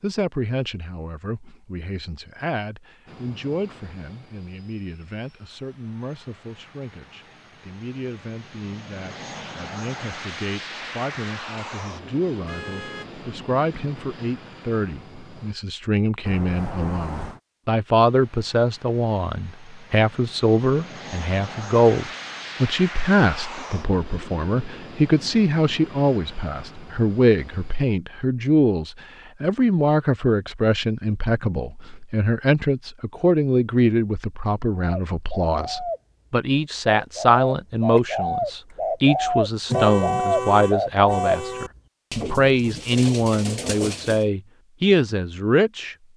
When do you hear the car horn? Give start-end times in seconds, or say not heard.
12.4-13.1, 16.2-17.4, 39.6-41.7.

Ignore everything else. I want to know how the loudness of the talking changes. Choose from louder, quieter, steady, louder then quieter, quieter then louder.
louder.